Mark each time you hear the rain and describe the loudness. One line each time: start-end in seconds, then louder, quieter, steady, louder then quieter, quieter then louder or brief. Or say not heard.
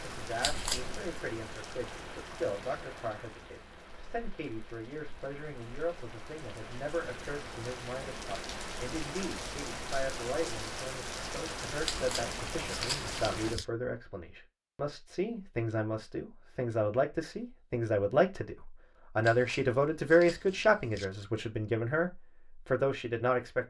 0.0-13.6 quieter then louder.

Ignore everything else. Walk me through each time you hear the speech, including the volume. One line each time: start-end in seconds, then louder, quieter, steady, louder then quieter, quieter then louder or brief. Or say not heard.
0.0-23.6 louder.